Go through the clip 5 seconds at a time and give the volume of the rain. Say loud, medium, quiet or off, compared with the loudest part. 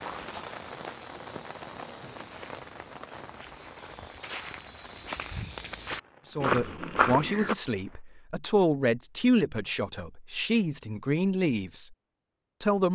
loud, quiet, off.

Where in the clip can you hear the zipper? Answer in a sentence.
You can't hear the zipper here.